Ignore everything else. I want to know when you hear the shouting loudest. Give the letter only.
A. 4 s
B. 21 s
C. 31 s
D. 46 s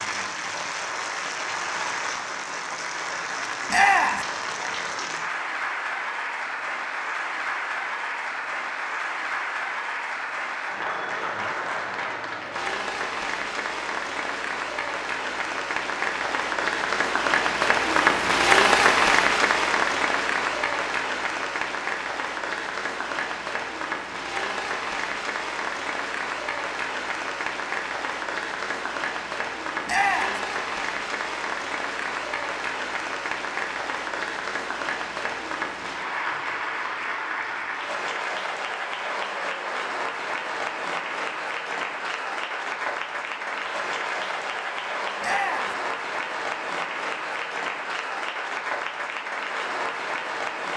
A.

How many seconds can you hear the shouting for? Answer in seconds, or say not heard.
2 s.